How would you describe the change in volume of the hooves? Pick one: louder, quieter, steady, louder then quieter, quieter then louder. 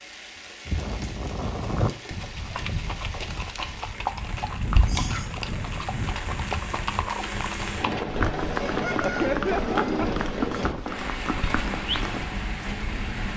steady.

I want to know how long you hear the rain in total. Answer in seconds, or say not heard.
13 s.